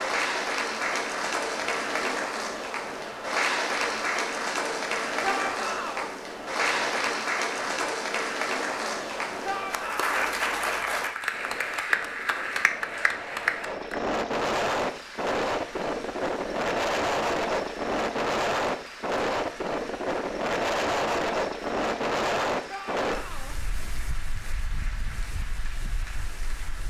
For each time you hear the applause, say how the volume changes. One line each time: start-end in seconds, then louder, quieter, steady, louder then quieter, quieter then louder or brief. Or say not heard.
0.0-26.8 quieter.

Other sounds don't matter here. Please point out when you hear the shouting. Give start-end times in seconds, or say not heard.
5.2-6.1, 9.4-10.1, 22.6-23.6.